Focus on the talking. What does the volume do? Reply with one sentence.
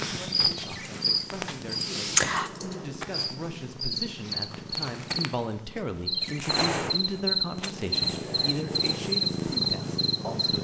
The loudness of the talking goes up.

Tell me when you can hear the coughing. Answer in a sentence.
You can't hear the coughing here.